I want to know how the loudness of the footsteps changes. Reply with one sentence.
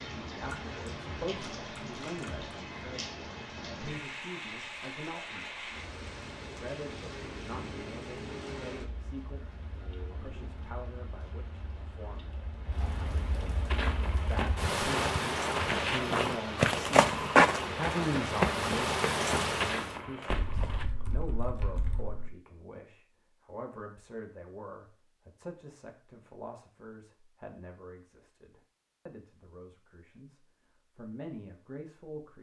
The volume of the footsteps goes up, then down.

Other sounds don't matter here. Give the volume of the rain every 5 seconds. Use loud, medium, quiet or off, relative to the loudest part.
medium, medium, medium, loud, off, off, off.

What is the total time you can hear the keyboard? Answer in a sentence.
You can hear the keyboard for 4 seconds altogether.